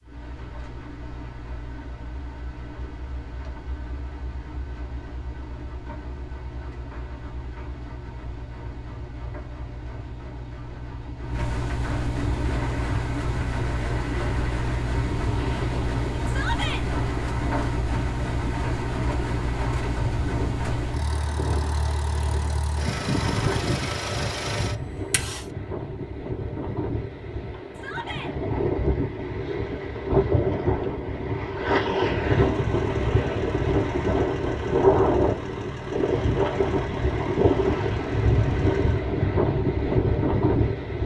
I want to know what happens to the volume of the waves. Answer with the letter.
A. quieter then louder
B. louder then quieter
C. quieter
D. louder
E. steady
D.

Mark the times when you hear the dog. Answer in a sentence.
The dog can't be heard in this clip.